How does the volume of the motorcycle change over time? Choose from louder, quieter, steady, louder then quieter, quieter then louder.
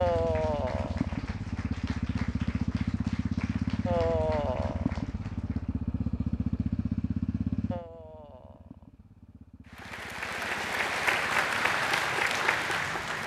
quieter.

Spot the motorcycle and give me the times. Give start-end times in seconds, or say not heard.
0.0-13.2.